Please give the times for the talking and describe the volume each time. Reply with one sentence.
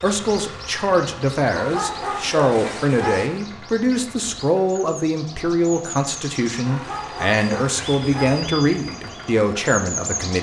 The talking can be heard from 0.0 to 10.3 s, at a steady volume.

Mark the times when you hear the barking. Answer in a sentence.
You can hear the barking from 1.5 to 3.3 s and from 6.7 to 8.4 s.